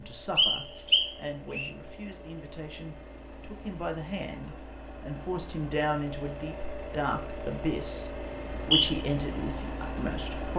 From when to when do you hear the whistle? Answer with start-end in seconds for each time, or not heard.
0.3-1.7, 8.3-9.1.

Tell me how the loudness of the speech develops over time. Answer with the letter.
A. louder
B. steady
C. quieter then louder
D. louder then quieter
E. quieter
A.